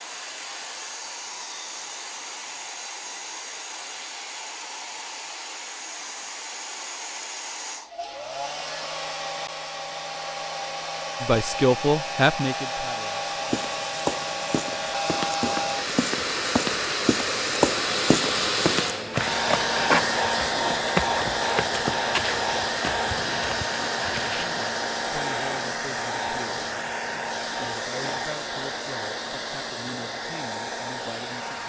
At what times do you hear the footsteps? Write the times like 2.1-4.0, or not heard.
13.3-24.8.